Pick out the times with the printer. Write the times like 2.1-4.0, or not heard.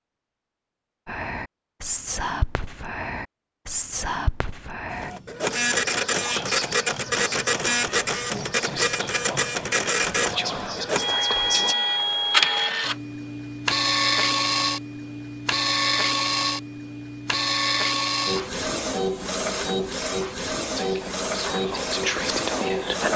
4.9-23.1.